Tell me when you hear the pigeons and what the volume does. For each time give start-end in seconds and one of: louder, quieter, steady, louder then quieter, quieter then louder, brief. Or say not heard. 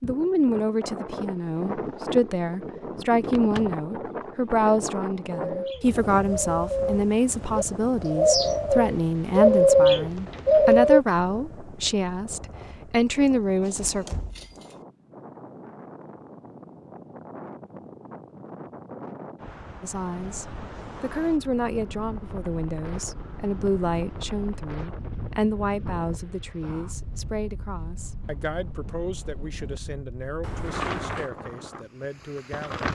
5.3-11.0 louder.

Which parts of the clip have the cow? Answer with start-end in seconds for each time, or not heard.
not heard.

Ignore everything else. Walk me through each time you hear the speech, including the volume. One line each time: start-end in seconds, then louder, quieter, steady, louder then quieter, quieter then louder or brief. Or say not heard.
0.0-14.1 steady
19.8-32.9 quieter.